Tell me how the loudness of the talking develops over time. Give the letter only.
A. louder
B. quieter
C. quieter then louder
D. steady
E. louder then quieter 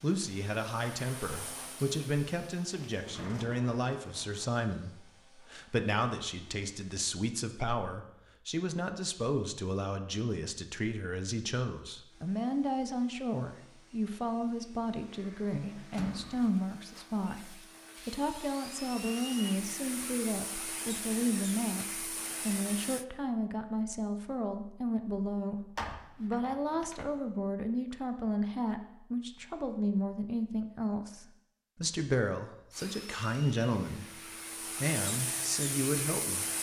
D.